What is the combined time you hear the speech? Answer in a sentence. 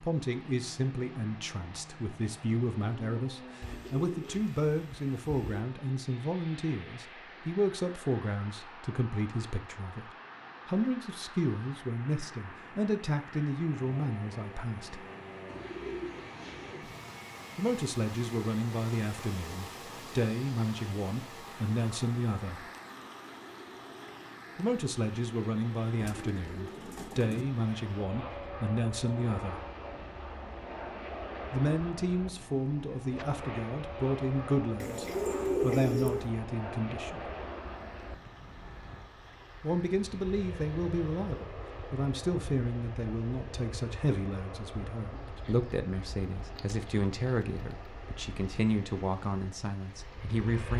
You can hear the speech for 42 seconds altogether.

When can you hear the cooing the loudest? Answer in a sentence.
The loudest moment of the cooing is at 36 seconds.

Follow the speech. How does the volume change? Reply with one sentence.
The volume of the speech stays about the same.